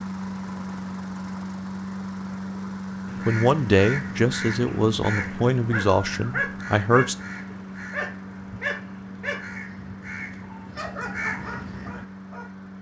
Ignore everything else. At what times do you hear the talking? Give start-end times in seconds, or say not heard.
3.2-7.2.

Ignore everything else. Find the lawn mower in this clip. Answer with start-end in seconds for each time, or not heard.
0.0-12.7.